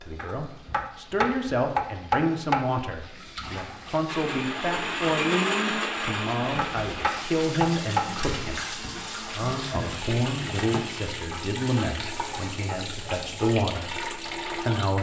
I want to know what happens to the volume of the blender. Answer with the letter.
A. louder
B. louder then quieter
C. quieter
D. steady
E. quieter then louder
C.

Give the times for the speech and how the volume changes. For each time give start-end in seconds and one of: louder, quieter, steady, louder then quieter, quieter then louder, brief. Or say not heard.
0.0-14.9 steady.